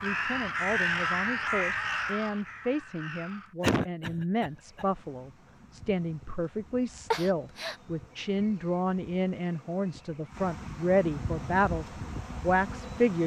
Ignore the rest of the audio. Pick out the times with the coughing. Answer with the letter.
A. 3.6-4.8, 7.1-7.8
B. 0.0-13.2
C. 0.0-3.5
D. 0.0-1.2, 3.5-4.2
A.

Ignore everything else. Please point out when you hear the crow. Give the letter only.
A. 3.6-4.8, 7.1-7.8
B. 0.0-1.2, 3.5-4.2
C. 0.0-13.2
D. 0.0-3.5
D.